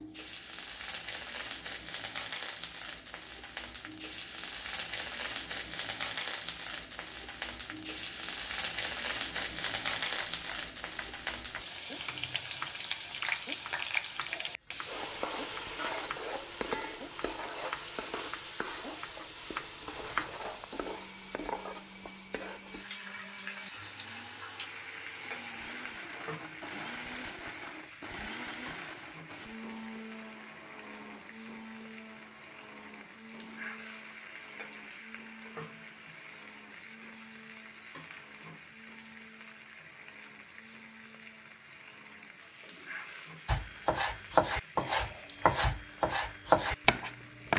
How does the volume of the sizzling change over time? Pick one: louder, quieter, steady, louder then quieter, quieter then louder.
quieter.